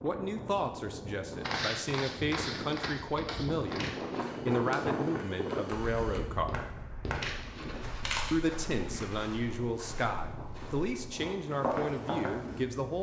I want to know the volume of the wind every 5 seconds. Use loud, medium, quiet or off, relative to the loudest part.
loud, loud, medium.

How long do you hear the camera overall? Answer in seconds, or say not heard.
3 s.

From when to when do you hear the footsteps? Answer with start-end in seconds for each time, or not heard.
1.4-12.7.